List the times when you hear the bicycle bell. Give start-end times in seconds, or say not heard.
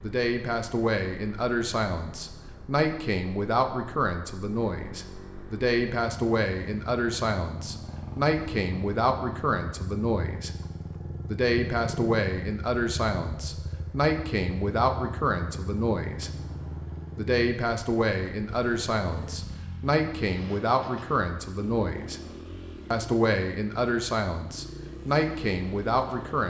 not heard.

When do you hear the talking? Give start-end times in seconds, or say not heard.
0.0-10.5, 11.2-16.3, 17.1-22.2, 22.9-26.4.